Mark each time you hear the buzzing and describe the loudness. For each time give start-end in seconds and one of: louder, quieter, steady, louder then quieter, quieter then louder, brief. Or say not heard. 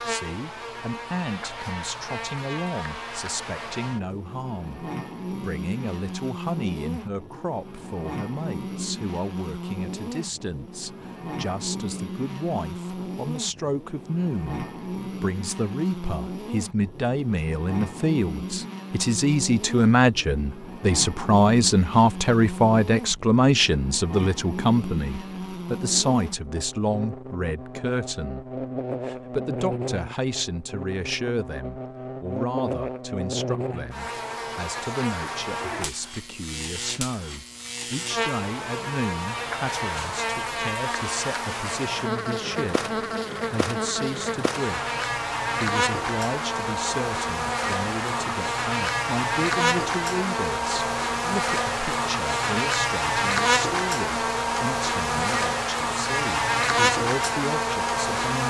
0.0-58.4 louder.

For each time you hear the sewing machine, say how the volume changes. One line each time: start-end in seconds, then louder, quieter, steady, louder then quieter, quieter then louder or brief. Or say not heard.
not heard.